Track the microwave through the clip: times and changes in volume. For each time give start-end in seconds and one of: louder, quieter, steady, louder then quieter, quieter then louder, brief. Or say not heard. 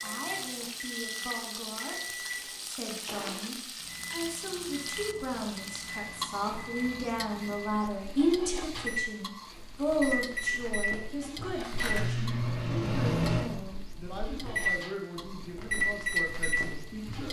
0.0-17.2 louder.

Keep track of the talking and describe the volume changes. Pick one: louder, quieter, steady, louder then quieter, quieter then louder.
louder then quieter.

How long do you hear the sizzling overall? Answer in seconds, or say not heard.
17 s.